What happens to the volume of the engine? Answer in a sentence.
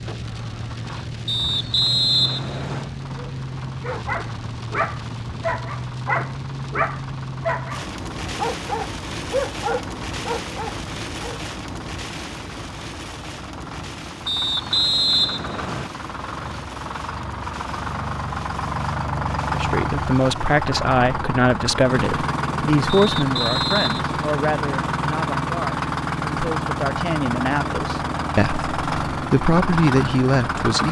The volume of the engine goes up.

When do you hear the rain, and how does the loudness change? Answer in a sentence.
The rain can be heard from 0.0 to 20.6 s, getting quieter.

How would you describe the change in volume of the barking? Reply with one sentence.
The volume of the barking stays about the same.